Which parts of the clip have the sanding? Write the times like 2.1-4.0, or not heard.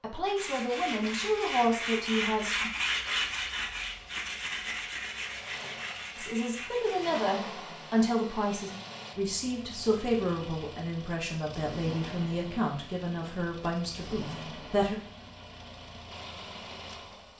0.2-7.2.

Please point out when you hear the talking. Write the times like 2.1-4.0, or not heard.
0.0-2.7, 6.2-14.9.